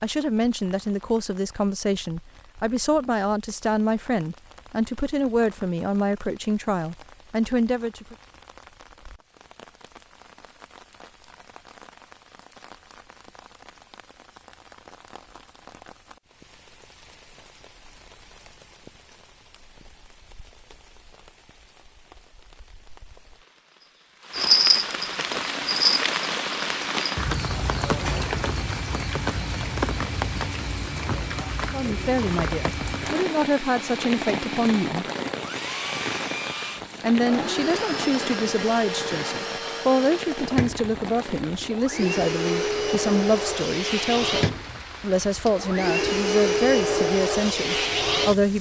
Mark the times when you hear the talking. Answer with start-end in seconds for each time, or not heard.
0.0-8.2, 31.7-35.0, 37.0-48.5.